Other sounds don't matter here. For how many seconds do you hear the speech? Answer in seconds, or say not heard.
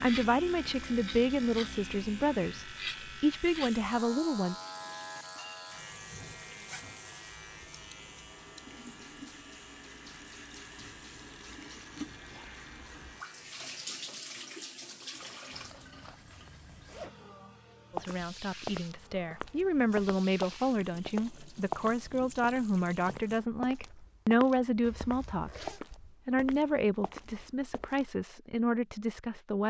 16 s.